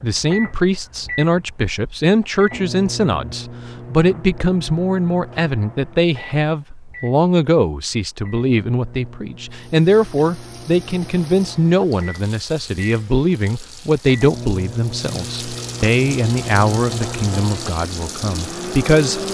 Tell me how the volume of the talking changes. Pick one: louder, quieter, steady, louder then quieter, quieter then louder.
steady.